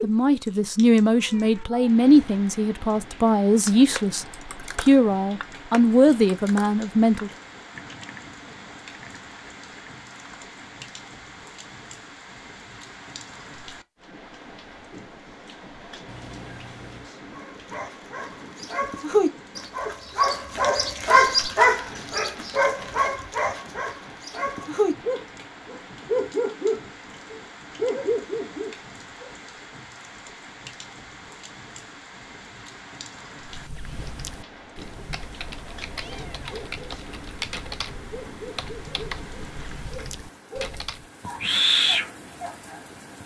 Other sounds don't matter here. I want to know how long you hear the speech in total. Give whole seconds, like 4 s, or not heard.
7 s.